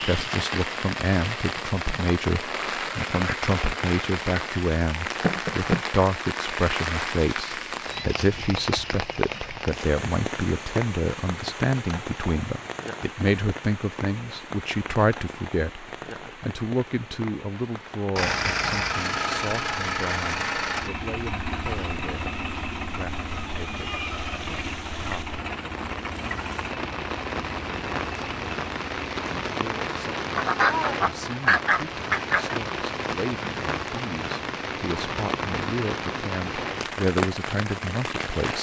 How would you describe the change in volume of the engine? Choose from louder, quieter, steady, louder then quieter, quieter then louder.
quieter.